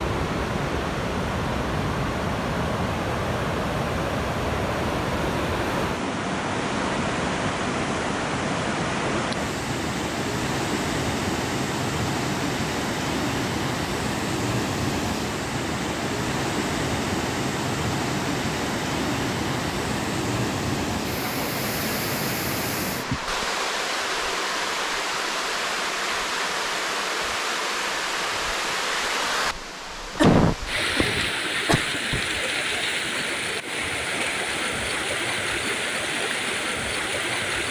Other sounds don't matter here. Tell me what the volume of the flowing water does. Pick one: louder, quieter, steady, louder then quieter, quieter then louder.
steady.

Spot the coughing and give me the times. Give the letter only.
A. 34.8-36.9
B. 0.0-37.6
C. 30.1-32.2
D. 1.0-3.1
C.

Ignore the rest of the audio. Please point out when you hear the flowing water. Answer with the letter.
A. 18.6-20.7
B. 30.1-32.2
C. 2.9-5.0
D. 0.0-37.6
D.